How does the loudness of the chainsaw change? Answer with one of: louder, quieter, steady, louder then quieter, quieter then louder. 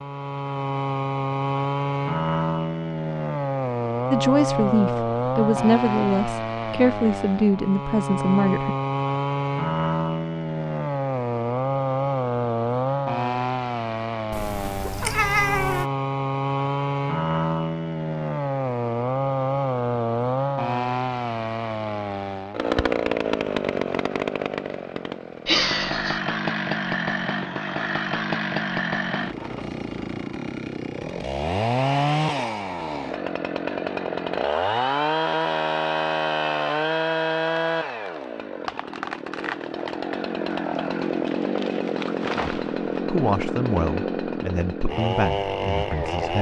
steady.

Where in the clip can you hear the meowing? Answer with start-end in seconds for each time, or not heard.
14.3-15.8, 25.4-26.2.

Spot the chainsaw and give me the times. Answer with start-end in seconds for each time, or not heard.
0.0-46.3.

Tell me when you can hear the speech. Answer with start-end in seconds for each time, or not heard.
4.1-8.8, 42.4-46.3.